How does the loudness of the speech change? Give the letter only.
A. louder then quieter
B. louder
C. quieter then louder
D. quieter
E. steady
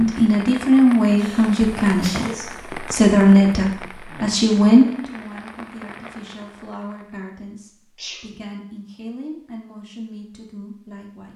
D.